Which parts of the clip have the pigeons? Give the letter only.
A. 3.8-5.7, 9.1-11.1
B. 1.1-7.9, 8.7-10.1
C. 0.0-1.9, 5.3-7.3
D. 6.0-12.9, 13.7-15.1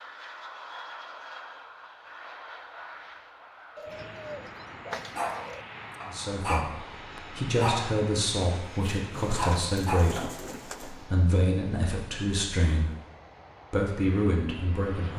A.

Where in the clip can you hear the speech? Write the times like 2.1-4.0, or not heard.
6.0-12.9, 13.7-15.1.